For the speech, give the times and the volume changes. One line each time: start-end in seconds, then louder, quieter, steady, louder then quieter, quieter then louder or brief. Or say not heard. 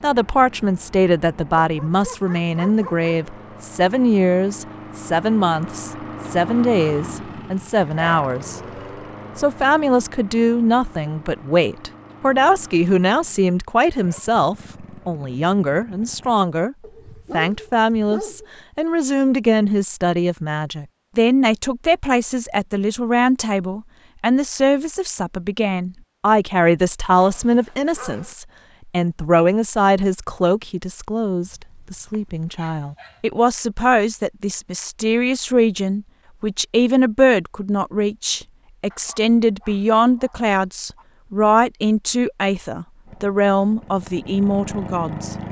0.0-8.6 steady
9.3-45.4 steady.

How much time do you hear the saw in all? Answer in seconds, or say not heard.
not heard.